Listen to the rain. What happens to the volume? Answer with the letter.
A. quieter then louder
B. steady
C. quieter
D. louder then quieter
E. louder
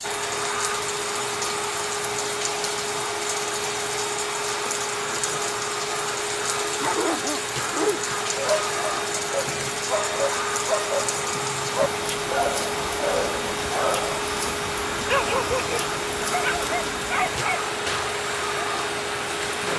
B.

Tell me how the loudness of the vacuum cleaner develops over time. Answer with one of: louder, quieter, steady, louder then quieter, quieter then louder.
steady.